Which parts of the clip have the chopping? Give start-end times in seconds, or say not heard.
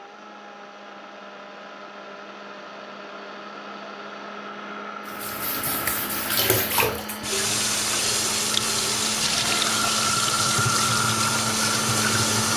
not heard.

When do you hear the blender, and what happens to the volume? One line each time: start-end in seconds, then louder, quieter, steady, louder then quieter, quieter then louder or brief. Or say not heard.
0.0-12.5 louder.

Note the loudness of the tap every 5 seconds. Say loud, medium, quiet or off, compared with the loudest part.
off, loud, loud.